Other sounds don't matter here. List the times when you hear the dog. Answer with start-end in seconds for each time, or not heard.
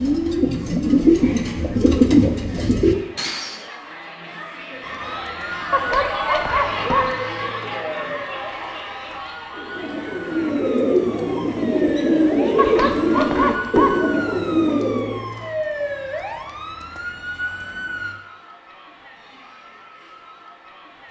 5.7-7.2, 12.6-14.1.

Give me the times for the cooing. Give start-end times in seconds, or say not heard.
0.0-3.6, 9.5-15.2.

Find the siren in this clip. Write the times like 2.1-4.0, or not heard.
4.8-18.1.